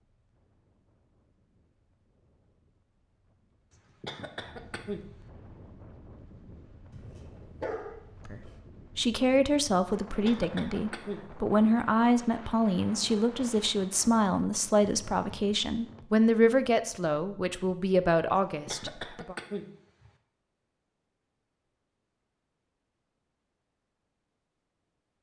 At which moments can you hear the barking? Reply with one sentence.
The barking can be heard from 6.9 to 8.6 s.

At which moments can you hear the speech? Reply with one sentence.
The speech can be heard from 8.2 to 19.4 s.